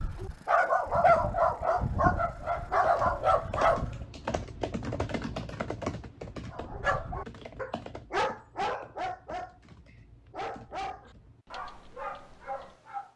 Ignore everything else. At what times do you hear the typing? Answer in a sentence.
The typing can be heard from 2.8 to 12.8 s.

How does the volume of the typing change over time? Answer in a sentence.
The volume of the typing goes down.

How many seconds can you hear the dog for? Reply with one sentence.
The dog can be heard for 10 seconds in total.